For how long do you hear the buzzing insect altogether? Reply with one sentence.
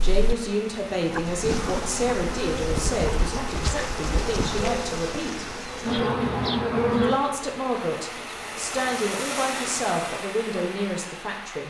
You can hear the buzzing insect for 10 seconds altogether.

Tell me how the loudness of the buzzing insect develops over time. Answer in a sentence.
The loudness of the buzzing insect goes up, then down.